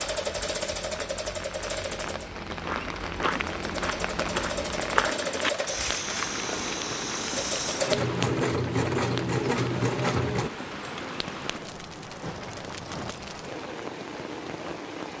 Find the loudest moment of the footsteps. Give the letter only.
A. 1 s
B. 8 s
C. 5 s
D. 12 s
C.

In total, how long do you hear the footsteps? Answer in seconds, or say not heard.
5 s.